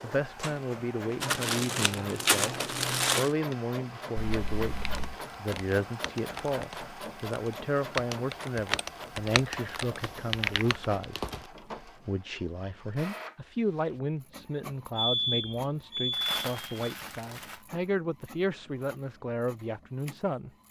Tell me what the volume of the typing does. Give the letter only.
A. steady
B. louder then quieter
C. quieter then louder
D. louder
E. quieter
D.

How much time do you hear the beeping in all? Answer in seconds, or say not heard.
3 s.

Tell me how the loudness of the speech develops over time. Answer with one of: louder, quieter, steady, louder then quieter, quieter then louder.
steady.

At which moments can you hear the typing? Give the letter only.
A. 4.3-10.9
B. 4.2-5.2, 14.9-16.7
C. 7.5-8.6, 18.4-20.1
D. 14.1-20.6
A.